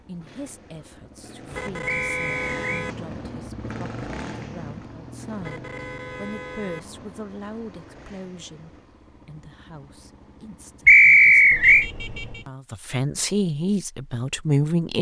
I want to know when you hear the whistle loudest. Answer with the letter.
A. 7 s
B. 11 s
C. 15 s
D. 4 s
B.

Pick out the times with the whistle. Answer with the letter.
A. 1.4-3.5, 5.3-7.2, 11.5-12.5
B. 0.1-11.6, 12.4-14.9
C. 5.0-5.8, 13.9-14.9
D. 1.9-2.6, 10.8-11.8
D.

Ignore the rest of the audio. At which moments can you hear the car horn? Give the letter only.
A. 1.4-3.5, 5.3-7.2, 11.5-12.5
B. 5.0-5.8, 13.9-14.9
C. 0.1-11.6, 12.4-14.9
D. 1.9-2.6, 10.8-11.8
A.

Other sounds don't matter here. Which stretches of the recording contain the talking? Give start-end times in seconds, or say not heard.
0.1-11.6, 12.4-14.9.